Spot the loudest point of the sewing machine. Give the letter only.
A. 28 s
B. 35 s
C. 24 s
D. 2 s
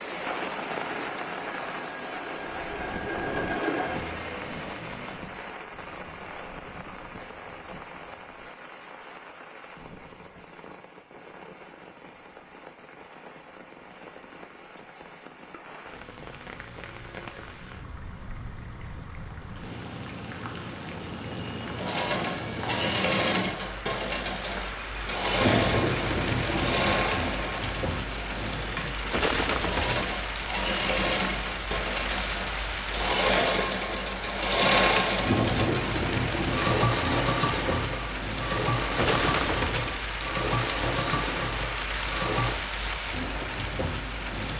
B.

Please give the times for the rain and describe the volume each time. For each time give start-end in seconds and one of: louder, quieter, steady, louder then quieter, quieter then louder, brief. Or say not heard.
0.0-44.5 quieter then louder.